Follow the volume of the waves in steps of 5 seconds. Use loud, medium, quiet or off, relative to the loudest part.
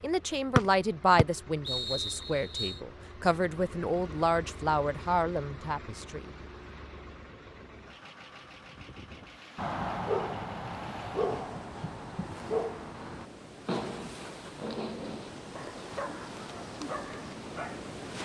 off, medium, medium, loud.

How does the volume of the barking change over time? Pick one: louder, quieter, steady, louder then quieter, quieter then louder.
quieter.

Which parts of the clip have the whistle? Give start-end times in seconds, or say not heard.
0.6-2.8.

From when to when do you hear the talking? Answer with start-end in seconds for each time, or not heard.
0.0-6.2.